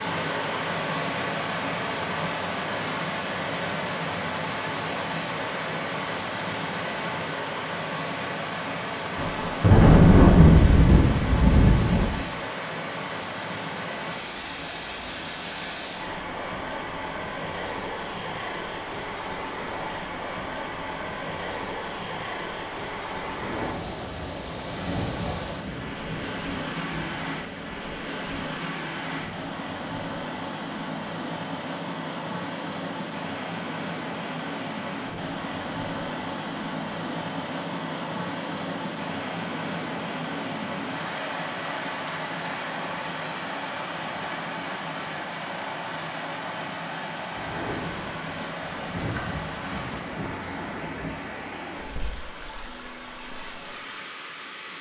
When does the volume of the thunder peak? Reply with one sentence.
The volume of the thunder peaks at 10 seconds.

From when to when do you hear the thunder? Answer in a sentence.
The thunder can be heard from 9.2 to 12.2 s, from 23.2 to 27.8 s and from 47.3 to 51.1 s.